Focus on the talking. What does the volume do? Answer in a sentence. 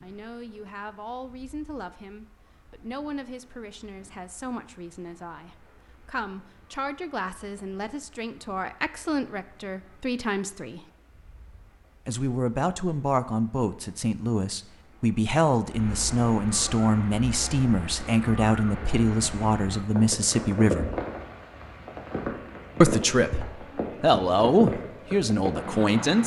The loudness of the talking goes up.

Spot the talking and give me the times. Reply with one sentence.
You can hear the talking from 0.0 to 10.9 s, from 12.1 to 20.9 s and from 22.8 to 26.2 s.